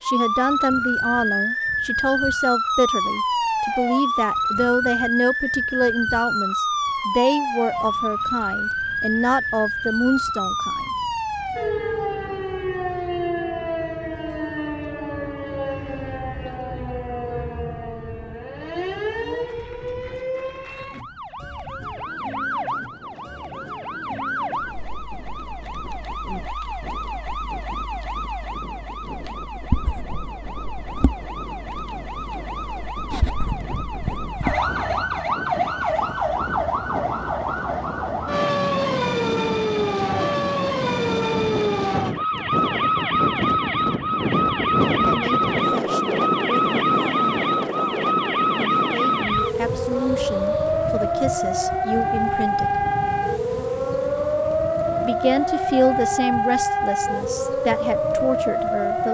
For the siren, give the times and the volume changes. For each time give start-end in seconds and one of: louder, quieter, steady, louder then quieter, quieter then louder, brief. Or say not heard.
0.0-59.0 quieter then louder.